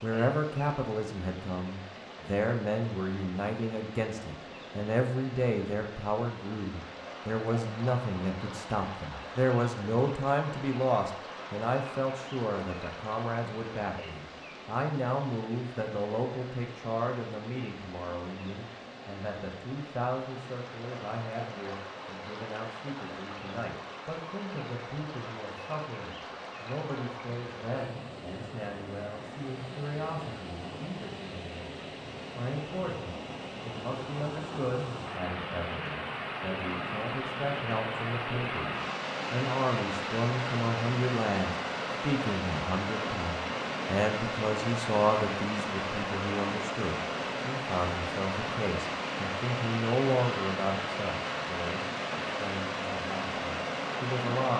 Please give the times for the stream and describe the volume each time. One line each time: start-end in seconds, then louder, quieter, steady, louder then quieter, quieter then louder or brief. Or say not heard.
0.0-54.5 louder.